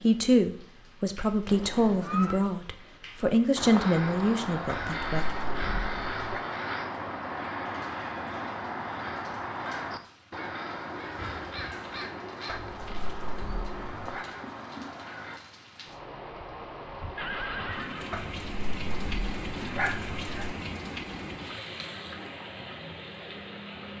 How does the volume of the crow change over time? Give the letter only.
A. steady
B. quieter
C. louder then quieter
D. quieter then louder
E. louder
B.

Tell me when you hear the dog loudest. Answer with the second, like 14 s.
20 s.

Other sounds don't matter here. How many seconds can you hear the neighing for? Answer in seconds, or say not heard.
3 s.